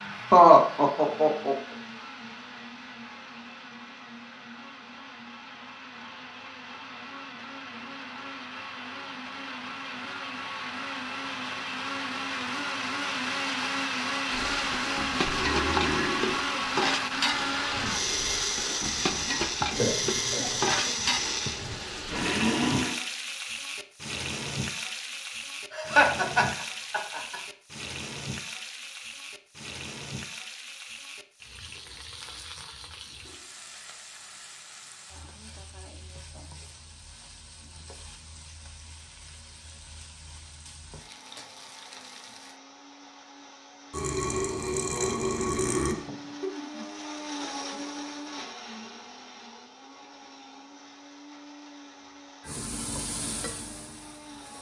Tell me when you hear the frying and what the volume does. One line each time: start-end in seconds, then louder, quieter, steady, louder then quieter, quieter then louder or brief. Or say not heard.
14.2-42.6 quieter
52.4-54.5 brief.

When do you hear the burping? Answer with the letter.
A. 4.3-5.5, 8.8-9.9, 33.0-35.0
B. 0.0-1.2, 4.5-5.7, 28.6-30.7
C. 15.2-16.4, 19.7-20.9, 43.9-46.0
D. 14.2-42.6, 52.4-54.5
C.